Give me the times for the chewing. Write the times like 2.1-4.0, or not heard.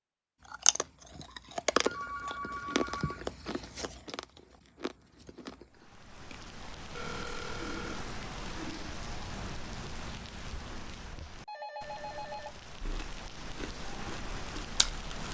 0.5-6.4, 12.8-15.2.